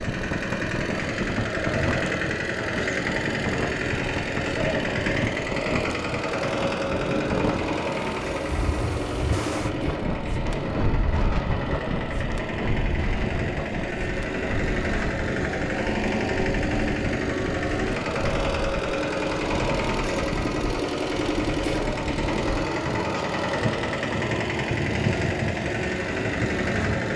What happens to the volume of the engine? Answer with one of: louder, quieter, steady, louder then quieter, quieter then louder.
steady.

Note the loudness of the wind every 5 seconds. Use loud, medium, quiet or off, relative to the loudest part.
loud, loud, loud, medium, loud, loud.